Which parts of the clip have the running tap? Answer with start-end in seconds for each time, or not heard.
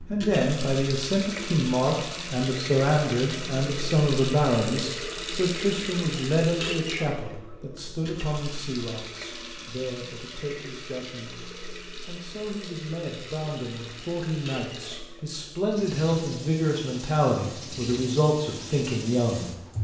0.0-19.7.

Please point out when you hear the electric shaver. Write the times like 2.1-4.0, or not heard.
not heard.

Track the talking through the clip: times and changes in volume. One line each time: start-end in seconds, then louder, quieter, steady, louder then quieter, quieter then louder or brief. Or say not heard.
0.1-19.5 quieter then louder.